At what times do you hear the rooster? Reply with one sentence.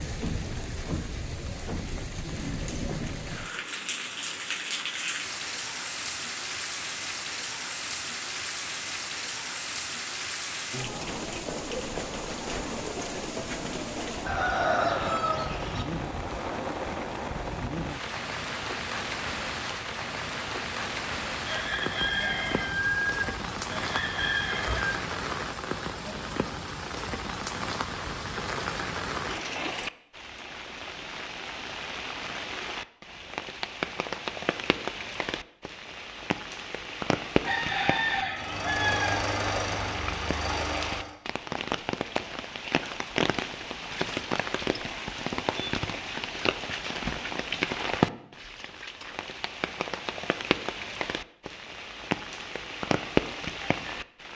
The rooster can be heard from 14.2 to 15.8 s, from 21.4 to 24.9 s and from 37.4 to 39.2 s.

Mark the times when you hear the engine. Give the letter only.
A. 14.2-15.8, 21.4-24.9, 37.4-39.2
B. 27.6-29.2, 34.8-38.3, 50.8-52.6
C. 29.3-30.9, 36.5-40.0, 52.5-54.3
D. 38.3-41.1
D.